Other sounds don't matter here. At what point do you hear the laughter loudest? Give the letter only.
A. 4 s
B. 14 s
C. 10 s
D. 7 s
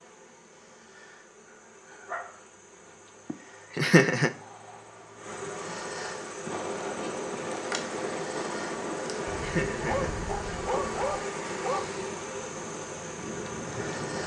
A.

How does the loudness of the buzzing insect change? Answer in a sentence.
The loudness of the buzzing insect goes up.